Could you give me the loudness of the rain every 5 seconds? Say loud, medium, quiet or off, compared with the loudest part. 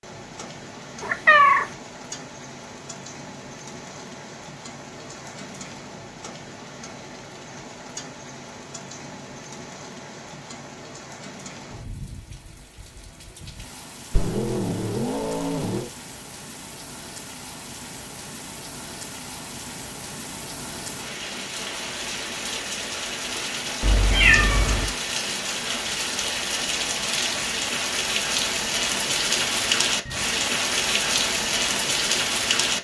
quiet, quiet, quiet, quiet, medium, loud, loud.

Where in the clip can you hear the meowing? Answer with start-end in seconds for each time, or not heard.
1.0-1.6, 14.1-15.9, 23.8-24.9.